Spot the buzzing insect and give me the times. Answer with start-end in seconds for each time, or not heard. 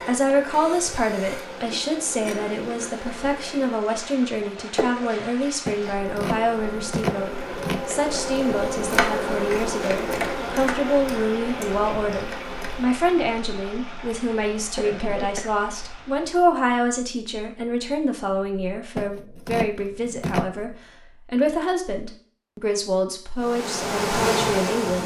0.0-13.0, 23.4-25.0.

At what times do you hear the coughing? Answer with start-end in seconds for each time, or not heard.
14.6-15.6.